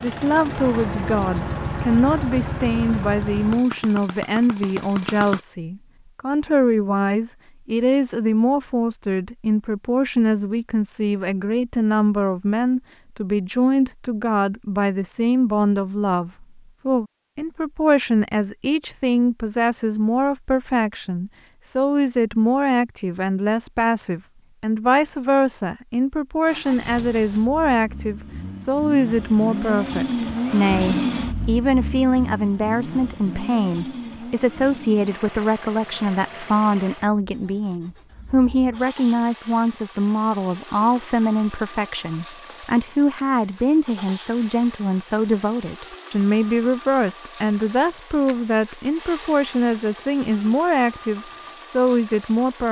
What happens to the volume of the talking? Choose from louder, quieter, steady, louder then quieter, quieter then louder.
steady.